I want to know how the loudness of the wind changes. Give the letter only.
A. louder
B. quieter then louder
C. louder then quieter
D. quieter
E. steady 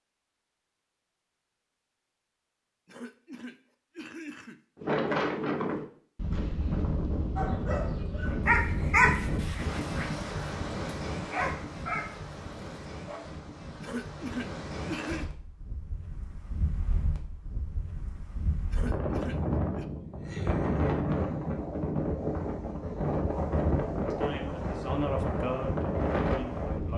B.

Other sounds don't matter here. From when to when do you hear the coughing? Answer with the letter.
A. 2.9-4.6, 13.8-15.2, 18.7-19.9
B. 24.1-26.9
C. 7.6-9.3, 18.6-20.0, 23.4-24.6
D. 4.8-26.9
A.